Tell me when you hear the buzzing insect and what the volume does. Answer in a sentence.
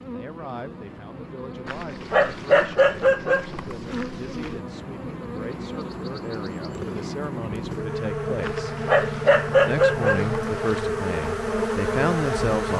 You can hear the buzzing insect from 0.0 to 12.7 s, getting louder.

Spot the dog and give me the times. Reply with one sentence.
You can hear the dog from 1.6 to 4.5 s and from 8.4 to 10.8 s.